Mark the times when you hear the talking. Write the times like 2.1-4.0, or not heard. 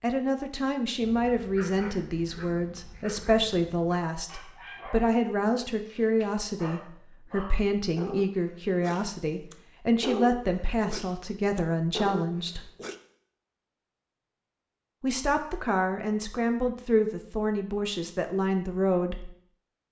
0.0-12.7, 15.0-19.3.